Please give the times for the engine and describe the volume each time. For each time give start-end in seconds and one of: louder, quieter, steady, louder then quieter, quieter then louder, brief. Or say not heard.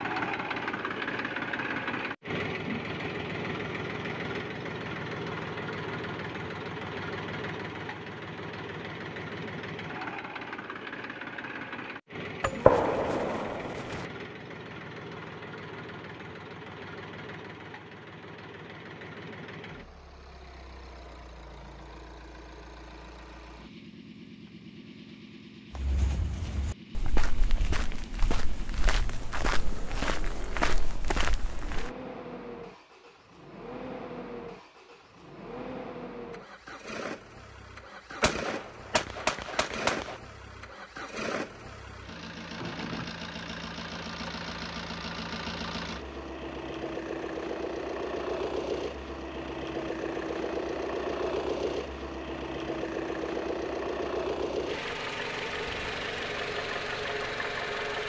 0.0-58.0 quieter then louder.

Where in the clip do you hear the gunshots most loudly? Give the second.
13 s.